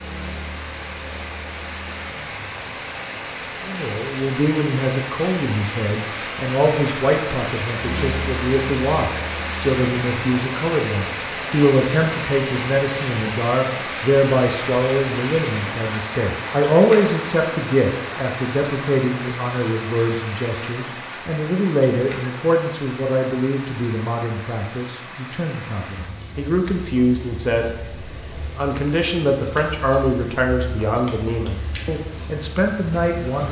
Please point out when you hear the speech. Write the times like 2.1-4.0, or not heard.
3.6-27.7, 28.6-33.4.